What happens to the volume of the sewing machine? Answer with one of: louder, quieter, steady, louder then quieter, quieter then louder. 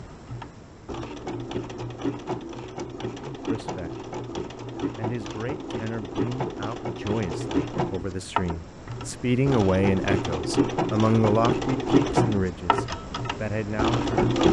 louder.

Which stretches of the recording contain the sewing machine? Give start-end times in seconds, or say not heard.
0.0-14.4.